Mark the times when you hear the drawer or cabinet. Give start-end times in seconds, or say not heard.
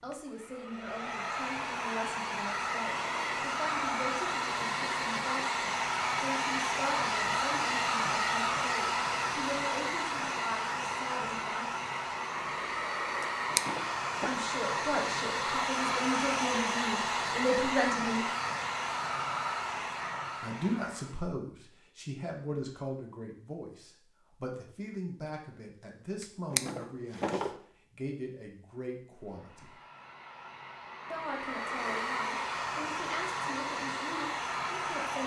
13.2-14.3, 26.2-27.6.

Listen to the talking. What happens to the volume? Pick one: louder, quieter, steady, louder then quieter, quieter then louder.
louder then quieter.